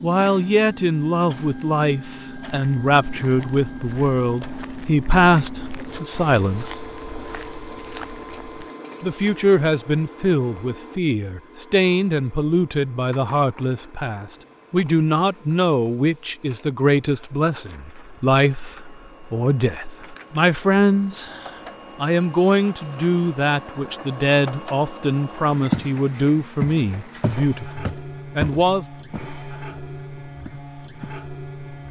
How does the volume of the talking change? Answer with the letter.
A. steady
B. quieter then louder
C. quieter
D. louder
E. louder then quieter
A.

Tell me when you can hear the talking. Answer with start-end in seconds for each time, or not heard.
0.0-6.7, 9.0-28.9.